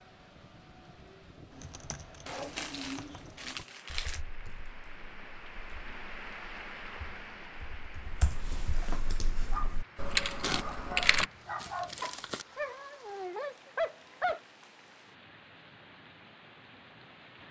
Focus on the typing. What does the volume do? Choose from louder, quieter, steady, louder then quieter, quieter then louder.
quieter then louder.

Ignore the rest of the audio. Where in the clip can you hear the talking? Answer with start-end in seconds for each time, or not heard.
not heard.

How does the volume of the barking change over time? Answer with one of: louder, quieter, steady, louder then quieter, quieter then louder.
louder.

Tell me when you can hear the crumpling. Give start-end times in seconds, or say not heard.
2.2-4.2, 10.4-12.4.